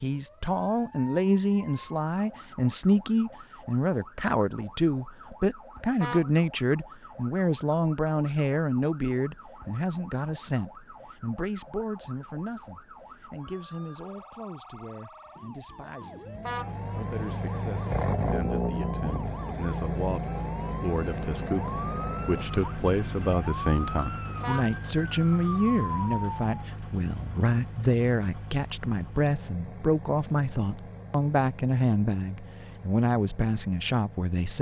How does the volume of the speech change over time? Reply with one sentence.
The volume of the speech goes down, then up.